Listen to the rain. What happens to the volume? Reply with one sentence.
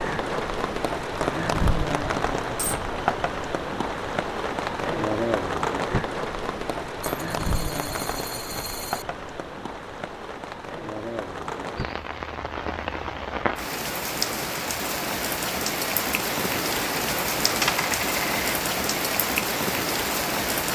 The volume of the rain goes down, then up.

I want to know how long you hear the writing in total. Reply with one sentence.
The writing can't be heard in this clip.